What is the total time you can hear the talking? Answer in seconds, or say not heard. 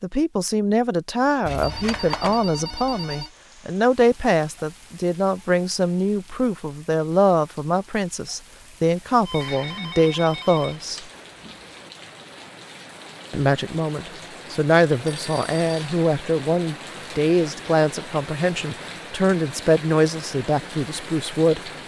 19 s.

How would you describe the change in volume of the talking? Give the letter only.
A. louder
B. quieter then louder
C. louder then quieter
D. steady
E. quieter
D.